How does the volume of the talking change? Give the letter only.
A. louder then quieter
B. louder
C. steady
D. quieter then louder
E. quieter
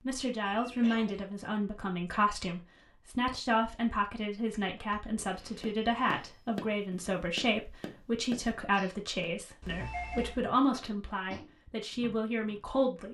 C.